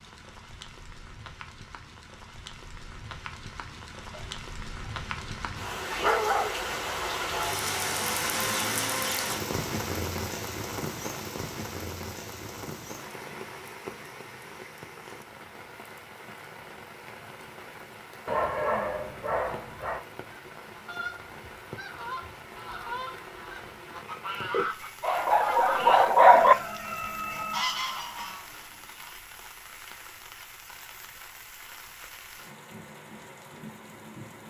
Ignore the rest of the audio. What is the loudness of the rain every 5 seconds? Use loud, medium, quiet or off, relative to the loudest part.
quiet, loud, medium, quiet, quiet, quiet, quiet.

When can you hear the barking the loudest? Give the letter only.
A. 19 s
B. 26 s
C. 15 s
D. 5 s
B.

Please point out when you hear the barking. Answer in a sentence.
The barking can be heard from 4.1 to 6.7 s, from 18.2 to 20.1 s and from 24.5 to 26.6 s.